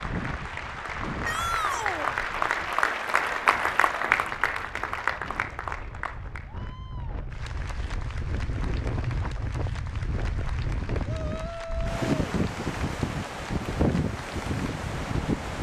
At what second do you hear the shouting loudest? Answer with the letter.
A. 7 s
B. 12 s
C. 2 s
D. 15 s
C.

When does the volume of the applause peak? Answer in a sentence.
The volume of the applause peaks at 4 seconds.